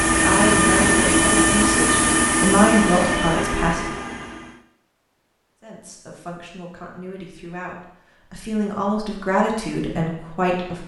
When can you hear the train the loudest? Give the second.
1 s.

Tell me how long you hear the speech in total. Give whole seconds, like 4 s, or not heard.
9 s.